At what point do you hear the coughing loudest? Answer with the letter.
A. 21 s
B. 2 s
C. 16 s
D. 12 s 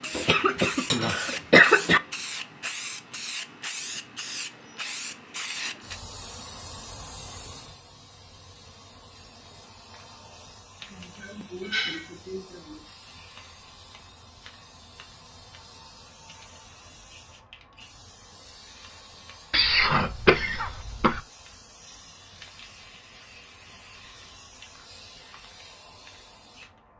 B.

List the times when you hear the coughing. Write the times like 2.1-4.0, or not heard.
0.1-2.0, 10.9-12.8, 19.5-21.2.